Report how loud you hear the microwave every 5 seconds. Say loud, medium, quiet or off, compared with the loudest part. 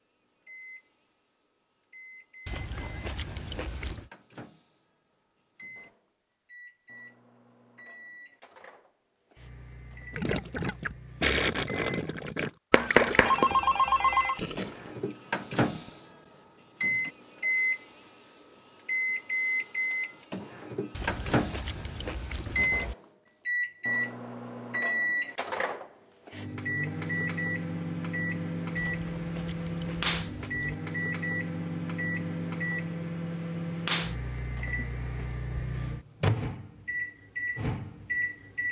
quiet, quiet, medium, loud, loud, loud, loud, loud.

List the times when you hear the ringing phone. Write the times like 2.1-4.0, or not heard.
12.7-14.4.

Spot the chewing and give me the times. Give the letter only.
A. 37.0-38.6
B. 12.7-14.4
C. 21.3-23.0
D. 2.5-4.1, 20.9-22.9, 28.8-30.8
D.